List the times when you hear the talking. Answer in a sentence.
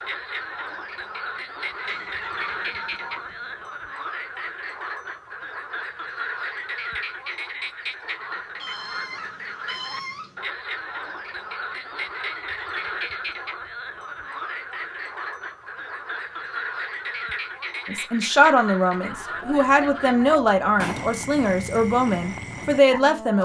The talking can be heard from 17.9 to 23.3 s.